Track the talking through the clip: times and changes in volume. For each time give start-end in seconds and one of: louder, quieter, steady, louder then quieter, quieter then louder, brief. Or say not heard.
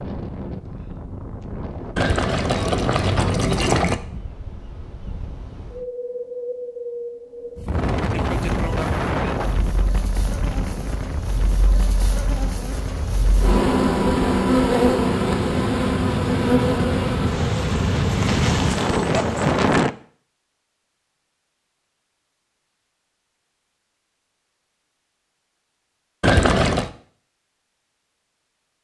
not heard.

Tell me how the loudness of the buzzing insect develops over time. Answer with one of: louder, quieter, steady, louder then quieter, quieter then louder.
louder then quieter.